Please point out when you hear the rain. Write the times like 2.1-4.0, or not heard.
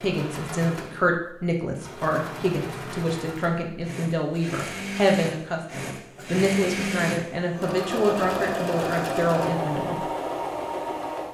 not heard.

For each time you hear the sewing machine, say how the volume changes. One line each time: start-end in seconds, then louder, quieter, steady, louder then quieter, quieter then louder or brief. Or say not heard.
0.0-11.2 louder.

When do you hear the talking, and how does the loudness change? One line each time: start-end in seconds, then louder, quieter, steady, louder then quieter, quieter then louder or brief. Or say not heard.
0.0-10.0 steady.